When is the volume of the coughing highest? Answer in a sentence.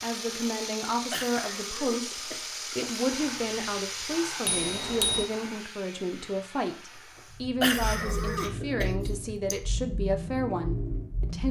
The volume of the coughing peaks at 8 seconds.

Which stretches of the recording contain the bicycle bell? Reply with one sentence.
You can hear the bicycle bell from 4.5 to 5.3 s.